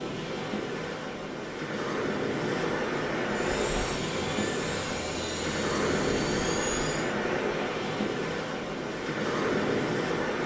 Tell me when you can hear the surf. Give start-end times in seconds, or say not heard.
0.0-10.4.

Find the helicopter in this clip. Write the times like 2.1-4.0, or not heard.
3.2-7.2.